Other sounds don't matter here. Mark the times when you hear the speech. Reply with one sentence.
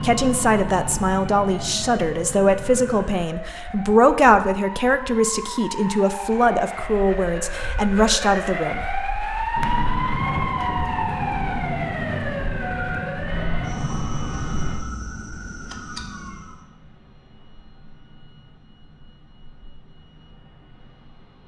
You can hear the speech from 0.0 to 8.8 s.